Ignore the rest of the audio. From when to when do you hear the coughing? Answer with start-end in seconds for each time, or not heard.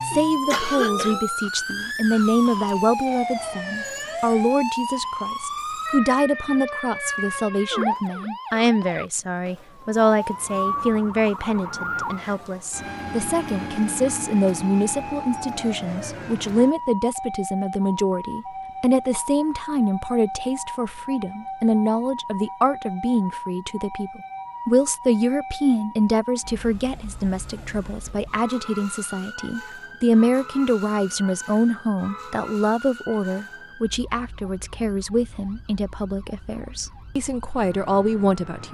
0.5-1.1.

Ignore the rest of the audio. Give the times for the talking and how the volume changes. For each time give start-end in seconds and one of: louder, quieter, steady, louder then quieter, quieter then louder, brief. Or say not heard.
0.0-38.6 steady.